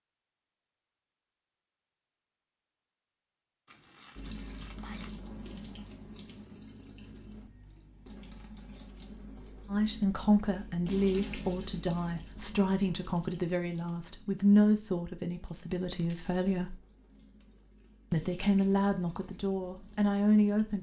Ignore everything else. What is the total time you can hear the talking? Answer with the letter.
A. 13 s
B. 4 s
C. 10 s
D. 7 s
C.